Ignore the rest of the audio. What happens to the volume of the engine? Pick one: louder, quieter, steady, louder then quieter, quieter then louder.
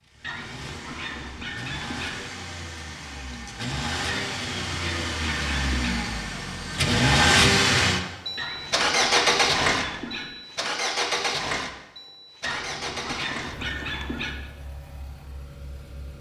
louder then quieter.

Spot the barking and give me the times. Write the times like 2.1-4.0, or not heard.
0.2-2.3, 4.0-6.0, 8.3-10.4, 12.4-14.5.